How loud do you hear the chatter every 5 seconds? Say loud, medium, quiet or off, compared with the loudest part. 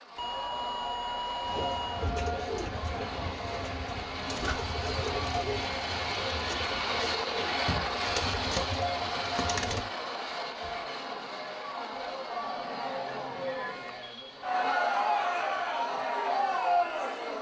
medium, medium, medium, loud.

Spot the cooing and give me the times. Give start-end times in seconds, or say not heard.
1.4-10.1.